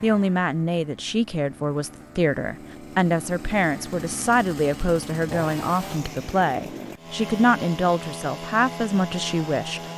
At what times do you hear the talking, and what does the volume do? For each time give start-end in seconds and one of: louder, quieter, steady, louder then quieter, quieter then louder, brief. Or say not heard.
0.0-9.8 steady.